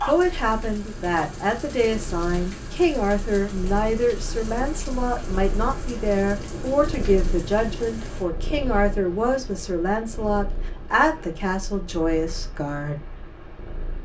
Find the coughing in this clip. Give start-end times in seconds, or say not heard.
not heard.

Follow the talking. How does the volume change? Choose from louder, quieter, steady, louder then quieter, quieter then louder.
steady.